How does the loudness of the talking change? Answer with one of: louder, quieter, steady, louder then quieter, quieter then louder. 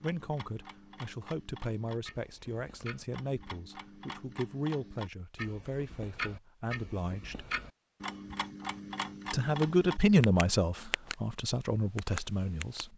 louder then quieter.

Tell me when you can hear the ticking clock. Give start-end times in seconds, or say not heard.
0.0-12.8.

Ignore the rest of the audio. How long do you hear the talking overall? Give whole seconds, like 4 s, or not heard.
11 s.